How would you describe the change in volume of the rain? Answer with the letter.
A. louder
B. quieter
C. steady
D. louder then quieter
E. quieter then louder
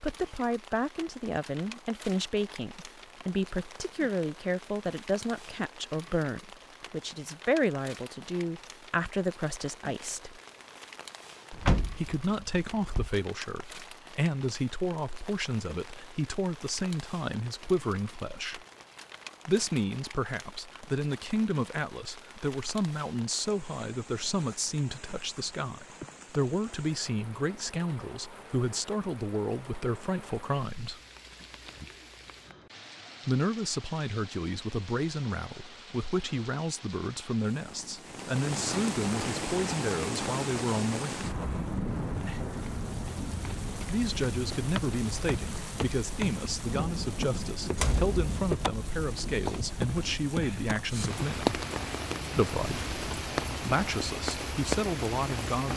A.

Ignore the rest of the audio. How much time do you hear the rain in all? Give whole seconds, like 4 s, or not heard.
56 s.